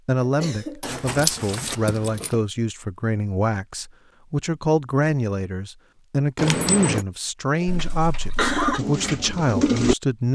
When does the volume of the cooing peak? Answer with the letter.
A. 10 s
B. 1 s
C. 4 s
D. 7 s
A.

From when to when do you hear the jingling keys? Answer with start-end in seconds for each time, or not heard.
0.8-2.4, 6.3-7.0.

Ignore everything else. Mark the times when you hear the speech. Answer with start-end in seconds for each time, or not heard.
0.1-10.3.